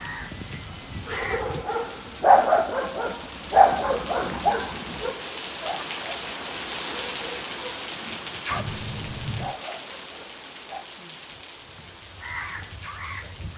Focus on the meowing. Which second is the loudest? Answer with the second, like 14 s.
9 s.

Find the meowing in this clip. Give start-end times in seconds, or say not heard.
0.0-1.4, 8.5-9.6.